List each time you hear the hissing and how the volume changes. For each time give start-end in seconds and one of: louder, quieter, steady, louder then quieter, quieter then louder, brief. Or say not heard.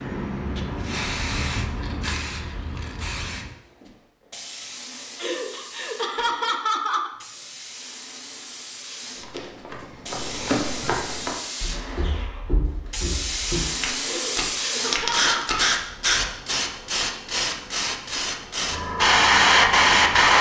0.0-20.3 quieter then louder.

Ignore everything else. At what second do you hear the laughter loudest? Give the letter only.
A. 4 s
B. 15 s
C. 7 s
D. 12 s
C.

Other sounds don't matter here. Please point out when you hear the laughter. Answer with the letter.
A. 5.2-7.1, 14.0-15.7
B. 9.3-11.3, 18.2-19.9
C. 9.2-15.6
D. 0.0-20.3
A.